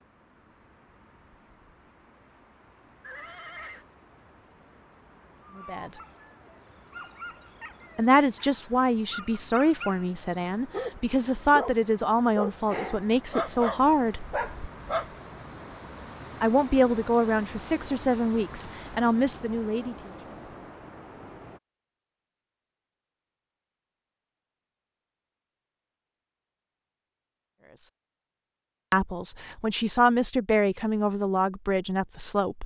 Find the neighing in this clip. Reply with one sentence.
The neighing can be heard from 3.0 to 3.9 s.